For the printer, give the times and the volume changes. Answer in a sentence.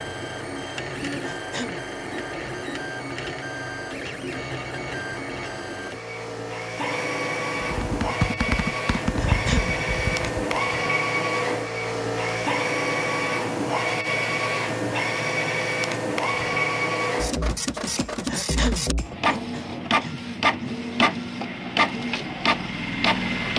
You can hear the printer from 0.0 to 23.5 s, getting louder.